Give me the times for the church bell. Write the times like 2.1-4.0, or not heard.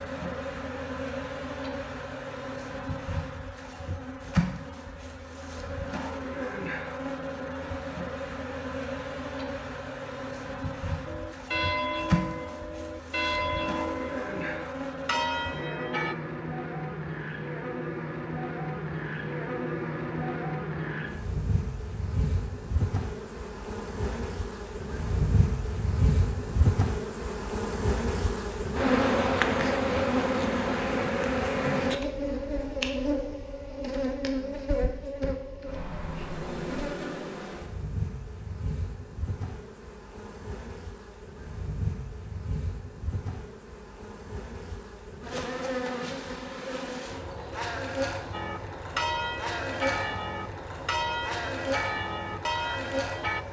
11.1-16.1, 48.3-53.4.